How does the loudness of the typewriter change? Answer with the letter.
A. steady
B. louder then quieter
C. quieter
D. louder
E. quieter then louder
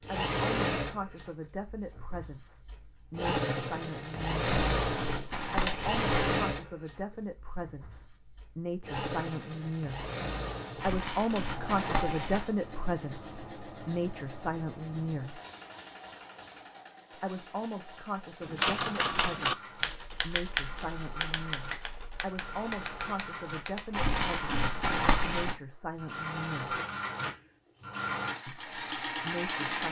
C.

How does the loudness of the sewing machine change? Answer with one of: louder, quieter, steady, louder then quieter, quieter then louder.
quieter then louder.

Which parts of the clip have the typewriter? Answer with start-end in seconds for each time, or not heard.
18.4-24.1.